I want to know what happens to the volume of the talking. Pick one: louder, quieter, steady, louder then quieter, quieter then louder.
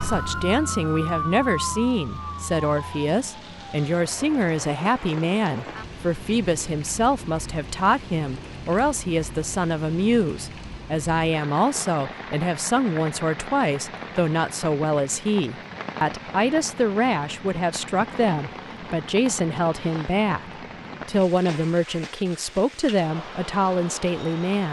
steady.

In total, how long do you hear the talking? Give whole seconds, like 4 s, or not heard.
24 s.